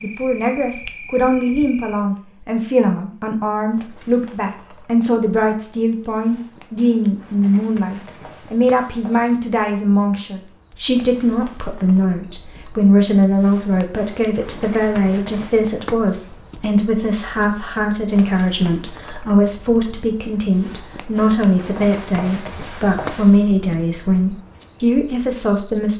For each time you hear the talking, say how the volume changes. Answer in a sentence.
The talking can be heard from 0.0 to 25.9 s, at a steady volume.